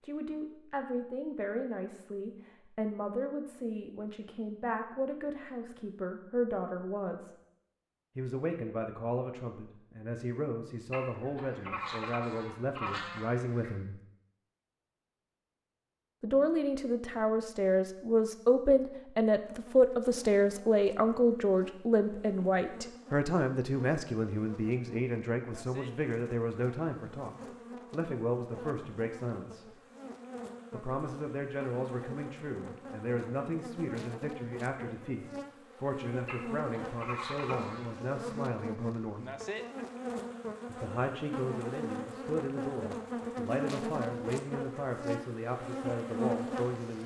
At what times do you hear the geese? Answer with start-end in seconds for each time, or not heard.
10.9-13.8, 36.2-37.9.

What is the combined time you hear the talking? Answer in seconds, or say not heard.
42 s.